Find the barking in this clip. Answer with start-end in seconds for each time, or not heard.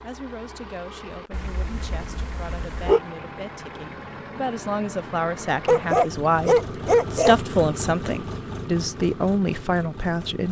1.3-3.0, 5.7-7.3.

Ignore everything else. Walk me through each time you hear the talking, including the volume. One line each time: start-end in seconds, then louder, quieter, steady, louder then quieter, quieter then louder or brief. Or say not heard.
0.0-10.4 louder.